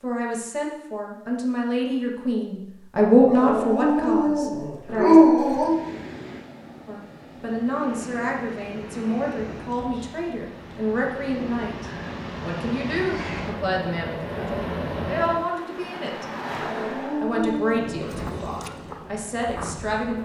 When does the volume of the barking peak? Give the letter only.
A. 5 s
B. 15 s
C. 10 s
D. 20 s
A.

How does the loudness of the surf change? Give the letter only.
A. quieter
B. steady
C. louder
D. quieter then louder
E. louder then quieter
E.